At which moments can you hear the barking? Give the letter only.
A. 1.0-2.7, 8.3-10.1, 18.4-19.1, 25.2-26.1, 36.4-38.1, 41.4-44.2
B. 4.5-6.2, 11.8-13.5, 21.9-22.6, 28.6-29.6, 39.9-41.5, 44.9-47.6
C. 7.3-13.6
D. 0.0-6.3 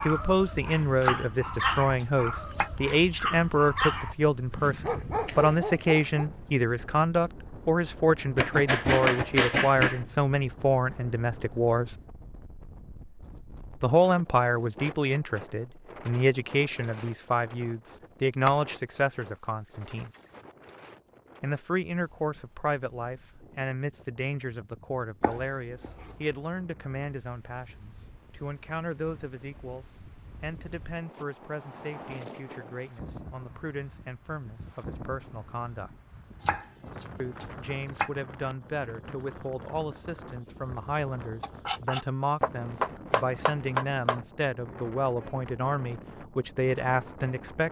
D.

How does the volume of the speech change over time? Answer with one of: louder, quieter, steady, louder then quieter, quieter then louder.
quieter then louder.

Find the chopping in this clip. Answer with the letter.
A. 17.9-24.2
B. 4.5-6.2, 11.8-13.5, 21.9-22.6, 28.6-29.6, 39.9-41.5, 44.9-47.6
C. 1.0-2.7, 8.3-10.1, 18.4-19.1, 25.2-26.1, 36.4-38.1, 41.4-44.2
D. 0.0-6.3
C.